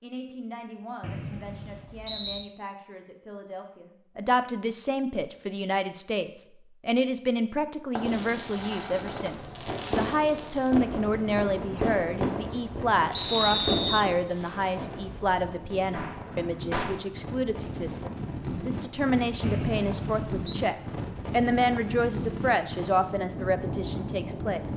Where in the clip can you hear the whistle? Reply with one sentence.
You can hear the whistle from 1.0 to 2.5 s, from 13.1 to 14.1 s and from 19.4 to 20.4 s.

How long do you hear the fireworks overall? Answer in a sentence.
You can hear the fireworks for 9 seconds altogether.